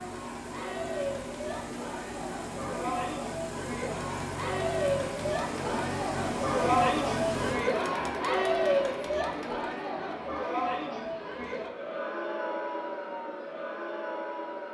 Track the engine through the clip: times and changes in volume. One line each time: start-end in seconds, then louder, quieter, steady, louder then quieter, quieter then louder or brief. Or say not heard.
0.0-7.6 louder.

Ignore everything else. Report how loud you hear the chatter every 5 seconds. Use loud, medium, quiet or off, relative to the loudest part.
medium, loud, medium.